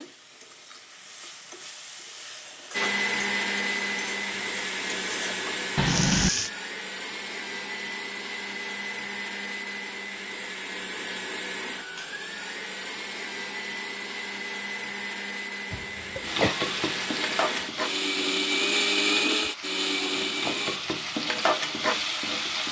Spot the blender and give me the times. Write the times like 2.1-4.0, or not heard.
2.7-20.8.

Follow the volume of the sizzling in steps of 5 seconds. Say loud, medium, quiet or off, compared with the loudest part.
quiet, loud, off, loud, loud.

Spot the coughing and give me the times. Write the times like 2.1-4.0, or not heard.
5.8-6.3, 15.7-16.6.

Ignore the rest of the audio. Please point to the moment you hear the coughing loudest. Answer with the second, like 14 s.
6 s.